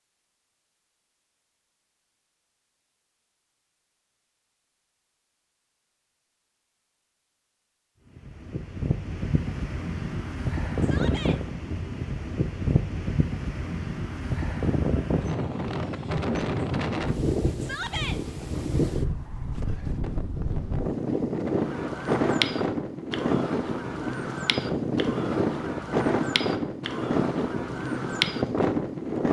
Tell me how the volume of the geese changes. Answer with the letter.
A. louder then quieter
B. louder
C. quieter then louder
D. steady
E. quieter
E.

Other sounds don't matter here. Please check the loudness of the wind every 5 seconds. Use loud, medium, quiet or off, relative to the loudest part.
off, medium, loud, loud, loud, loud.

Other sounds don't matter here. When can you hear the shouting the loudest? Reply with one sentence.
The loudest moment of the shouting is at 18 seconds.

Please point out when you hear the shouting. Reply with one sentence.
The shouting can be heard from 10.8 to 11.4 s and from 17.6 to 18.2 s.